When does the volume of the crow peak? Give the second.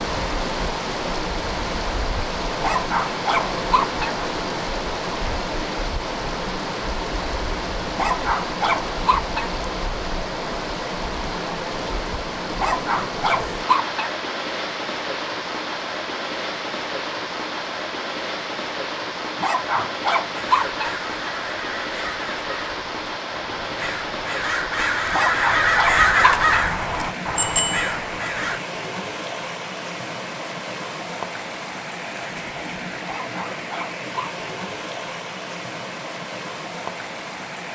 26 s.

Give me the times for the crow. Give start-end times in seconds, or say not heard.
20.3-28.6.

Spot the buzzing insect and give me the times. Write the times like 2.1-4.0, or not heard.
not heard.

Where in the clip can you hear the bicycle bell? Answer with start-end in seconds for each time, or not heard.
27.4-27.9.